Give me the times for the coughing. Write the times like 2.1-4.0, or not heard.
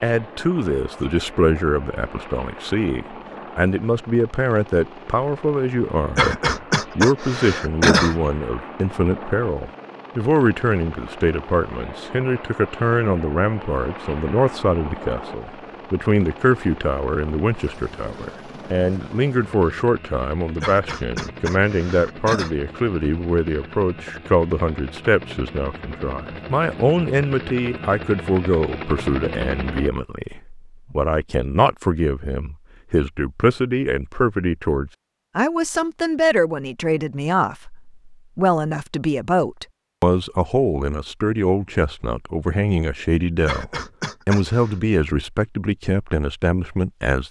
6.2-8.2, 20.6-22.5, 43.5-44.8.